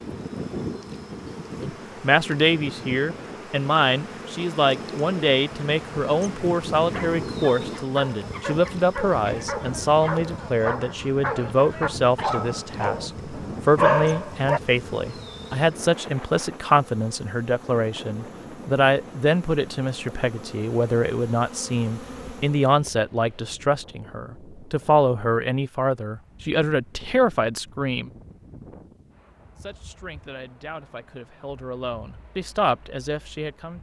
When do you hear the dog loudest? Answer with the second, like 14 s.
14 s.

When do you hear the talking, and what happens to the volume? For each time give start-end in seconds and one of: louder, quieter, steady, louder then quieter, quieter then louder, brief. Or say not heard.
1.6-28.1 steady
29.6-33.7 louder.